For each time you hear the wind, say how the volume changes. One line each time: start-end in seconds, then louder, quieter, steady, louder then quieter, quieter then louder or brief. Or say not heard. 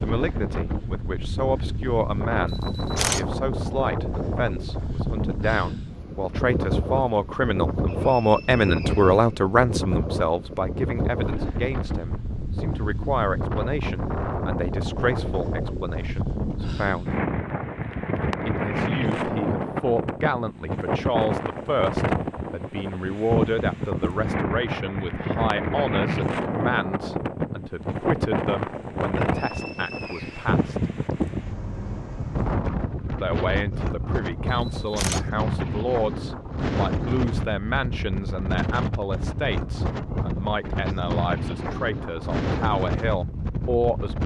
0.0-44.2 steady.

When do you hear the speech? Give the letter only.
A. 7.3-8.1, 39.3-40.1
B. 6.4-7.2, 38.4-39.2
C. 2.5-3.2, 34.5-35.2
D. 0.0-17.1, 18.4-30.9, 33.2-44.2
D.